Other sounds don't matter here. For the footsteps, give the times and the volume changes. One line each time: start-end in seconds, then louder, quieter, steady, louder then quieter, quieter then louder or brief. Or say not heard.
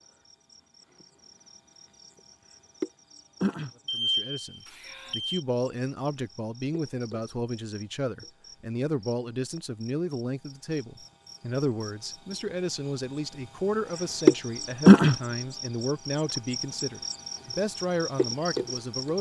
not heard.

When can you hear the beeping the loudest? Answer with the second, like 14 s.
4 s.